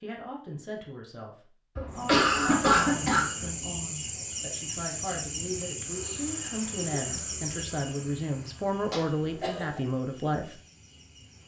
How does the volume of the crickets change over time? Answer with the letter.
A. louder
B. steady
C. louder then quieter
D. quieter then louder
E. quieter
E.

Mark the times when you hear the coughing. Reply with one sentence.
You can hear the coughing from 1.8 to 3.2 s and from 8.9 to 9.8 s.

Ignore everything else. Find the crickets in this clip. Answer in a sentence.
The crickets can be heard from 1.9 to 11.4 s.